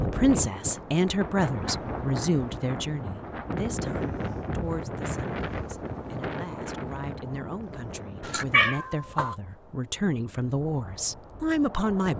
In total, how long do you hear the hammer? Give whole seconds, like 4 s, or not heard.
not heard.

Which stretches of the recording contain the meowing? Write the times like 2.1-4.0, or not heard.
8.2-9.3.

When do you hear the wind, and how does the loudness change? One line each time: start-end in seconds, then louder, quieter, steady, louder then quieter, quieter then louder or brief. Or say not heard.
0.0-12.1 quieter.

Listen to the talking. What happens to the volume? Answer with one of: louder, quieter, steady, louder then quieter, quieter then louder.
quieter then louder.